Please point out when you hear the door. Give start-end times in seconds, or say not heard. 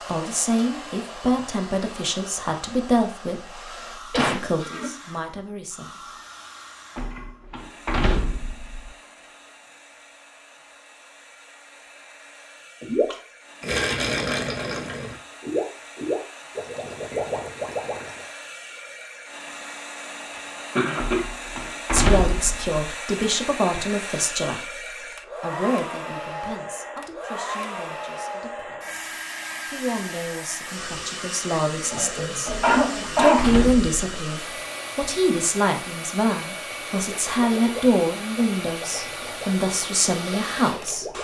7.0-8.9, 20.9-22.8, 32.5-33.9.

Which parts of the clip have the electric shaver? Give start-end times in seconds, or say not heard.
not heard.